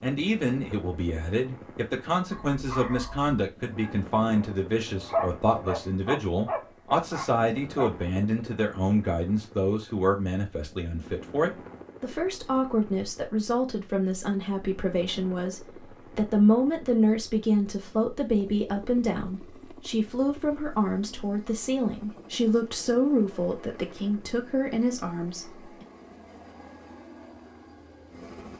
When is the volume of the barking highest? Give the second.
5 s.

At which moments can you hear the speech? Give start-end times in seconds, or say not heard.
0.0-25.9.